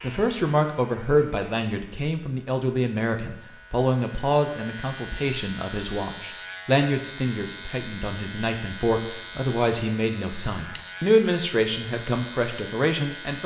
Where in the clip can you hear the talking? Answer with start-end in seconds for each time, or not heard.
0.0-13.4.